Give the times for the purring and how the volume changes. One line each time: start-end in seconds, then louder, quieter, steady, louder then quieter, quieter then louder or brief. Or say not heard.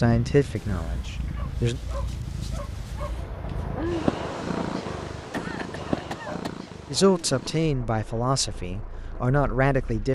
0.0-10.0 louder then quieter.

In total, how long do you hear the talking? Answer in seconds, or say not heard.
5 s.